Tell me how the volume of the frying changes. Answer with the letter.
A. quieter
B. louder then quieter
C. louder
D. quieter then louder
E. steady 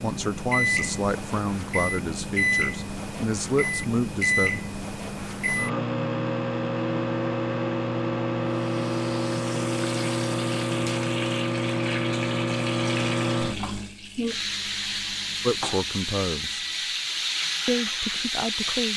C.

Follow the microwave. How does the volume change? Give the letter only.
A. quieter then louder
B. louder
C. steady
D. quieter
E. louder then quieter
D.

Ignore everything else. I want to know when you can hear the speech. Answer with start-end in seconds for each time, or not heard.
0.0-4.6, 15.4-16.6, 17.6-18.9.